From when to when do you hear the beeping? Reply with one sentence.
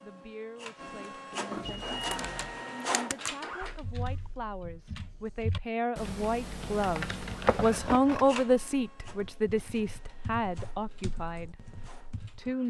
You can hear the beeping from 1.6 to 2.6 s.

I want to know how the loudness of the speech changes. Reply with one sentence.
The volume of the speech goes up, then down.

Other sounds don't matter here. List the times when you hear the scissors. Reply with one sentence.
The scissors can be heard from 1.5 to 2.2 s and from 7.5 to 8.3 s.